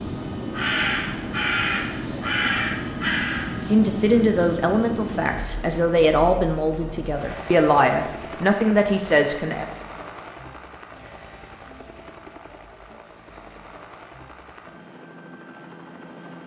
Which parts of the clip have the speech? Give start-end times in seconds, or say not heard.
3.6-9.7.